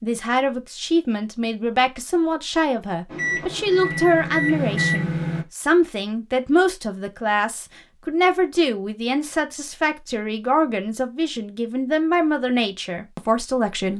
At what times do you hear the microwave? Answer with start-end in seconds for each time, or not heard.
3.0-5.5.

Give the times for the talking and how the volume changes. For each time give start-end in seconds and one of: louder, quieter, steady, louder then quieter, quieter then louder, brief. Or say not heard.
0.0-13.9 steady.